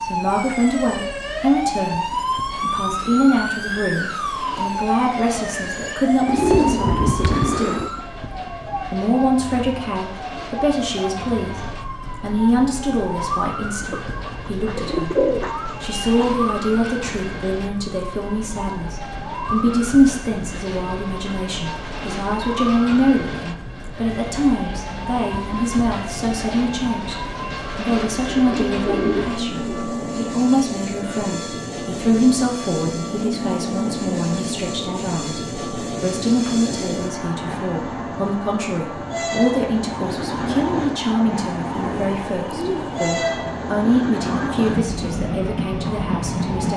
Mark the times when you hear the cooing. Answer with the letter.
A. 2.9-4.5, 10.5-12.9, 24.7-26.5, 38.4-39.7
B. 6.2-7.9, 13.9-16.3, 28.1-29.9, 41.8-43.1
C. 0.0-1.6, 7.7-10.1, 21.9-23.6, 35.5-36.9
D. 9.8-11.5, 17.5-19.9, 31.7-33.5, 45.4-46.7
B.